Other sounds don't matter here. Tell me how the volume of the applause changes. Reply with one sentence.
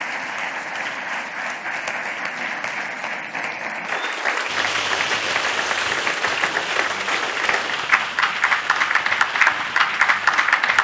The volume of the applause goes up.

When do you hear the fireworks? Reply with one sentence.
You can hear the fireworks from 4.5 to 10.7 s.